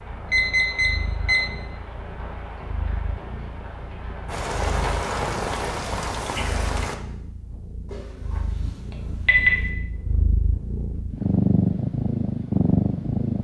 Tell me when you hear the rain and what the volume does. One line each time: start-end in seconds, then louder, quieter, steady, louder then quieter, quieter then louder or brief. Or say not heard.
0.0-7.0 louder.